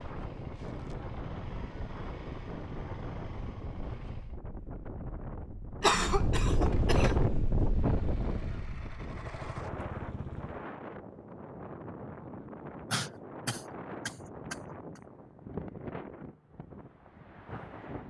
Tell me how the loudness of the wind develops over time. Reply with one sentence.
The volume of the wind goes up, then down.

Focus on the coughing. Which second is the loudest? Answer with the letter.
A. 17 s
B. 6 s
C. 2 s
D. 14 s
B.